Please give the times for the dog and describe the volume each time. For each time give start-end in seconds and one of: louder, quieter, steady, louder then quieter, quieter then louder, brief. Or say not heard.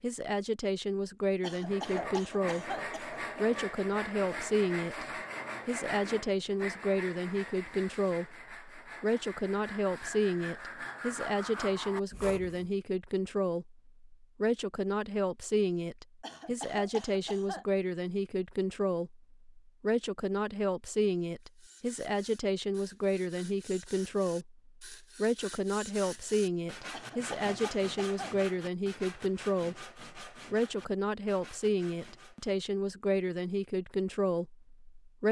not heard.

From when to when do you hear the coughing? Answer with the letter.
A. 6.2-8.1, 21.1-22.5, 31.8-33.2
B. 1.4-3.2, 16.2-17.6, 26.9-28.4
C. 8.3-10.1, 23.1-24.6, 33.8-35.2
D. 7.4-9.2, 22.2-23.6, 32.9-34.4
B.